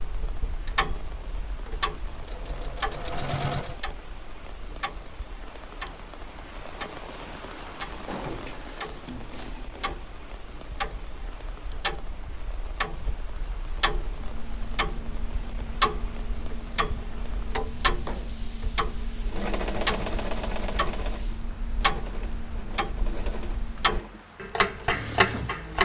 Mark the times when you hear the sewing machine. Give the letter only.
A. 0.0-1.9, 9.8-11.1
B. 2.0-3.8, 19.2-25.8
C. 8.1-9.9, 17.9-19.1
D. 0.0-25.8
B.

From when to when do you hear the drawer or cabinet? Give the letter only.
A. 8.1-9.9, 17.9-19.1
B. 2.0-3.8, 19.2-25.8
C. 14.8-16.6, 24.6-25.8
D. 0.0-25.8
A.